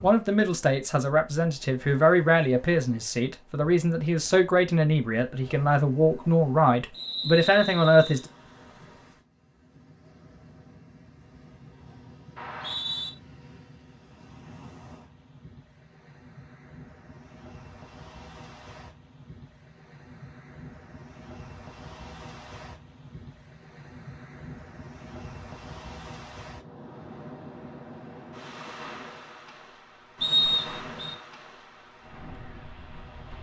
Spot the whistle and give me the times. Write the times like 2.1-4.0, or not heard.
6.9-8.2, 12.3-13.1, 30.2-31.1.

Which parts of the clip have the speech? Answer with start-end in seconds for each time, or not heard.
0.0-8.2.